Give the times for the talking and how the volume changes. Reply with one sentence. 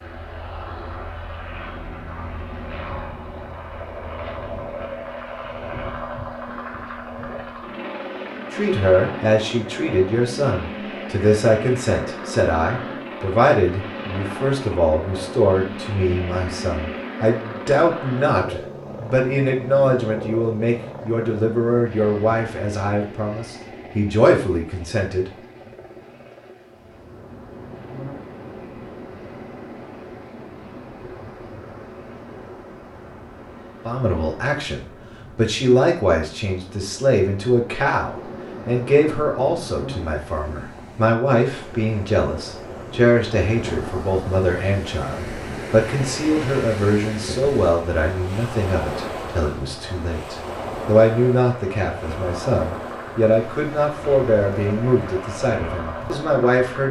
The talking can be heard from 8.5 to 25.2 s, at a steady volume; and from 33.9 to 56.8 s, at a steady volume.